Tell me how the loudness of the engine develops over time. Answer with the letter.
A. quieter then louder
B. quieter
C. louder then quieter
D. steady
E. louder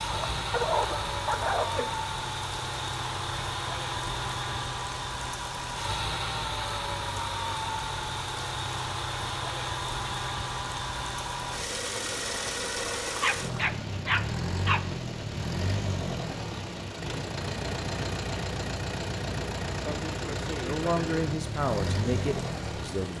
D.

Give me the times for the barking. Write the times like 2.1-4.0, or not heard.
0.1-1.9, 13.2-14.8.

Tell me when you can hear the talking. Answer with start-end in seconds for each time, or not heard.
20.6-23.1.